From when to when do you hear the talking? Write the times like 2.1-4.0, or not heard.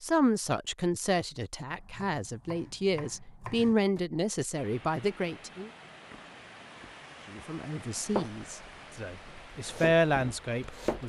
0.0-5.7, 7.3-11.0.